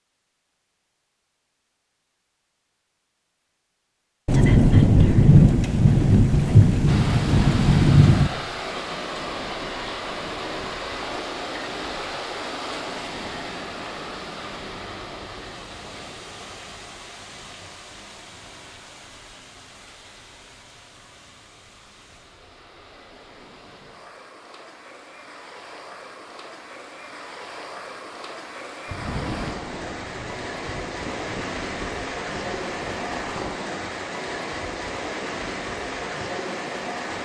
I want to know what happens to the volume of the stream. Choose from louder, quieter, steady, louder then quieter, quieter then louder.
quieter then louder.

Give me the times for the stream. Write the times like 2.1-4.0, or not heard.
6.8-37.1.